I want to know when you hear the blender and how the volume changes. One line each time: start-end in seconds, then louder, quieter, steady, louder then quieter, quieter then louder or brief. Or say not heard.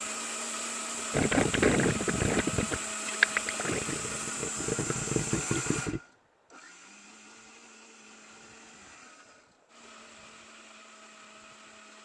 0.0-12.0 quieter.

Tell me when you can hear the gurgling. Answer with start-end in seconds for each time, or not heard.
1.1-6.0.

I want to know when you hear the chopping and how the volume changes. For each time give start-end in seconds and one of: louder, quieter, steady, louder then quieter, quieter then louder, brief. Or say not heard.
not heard.